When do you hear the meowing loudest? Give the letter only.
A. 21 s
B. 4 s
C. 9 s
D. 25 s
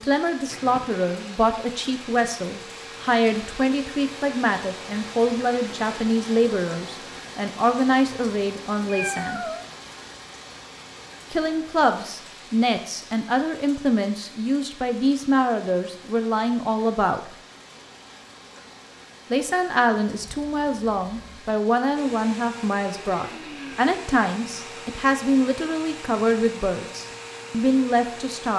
C.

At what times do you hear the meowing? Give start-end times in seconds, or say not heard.
8.8-9.7, 20.2-21.4.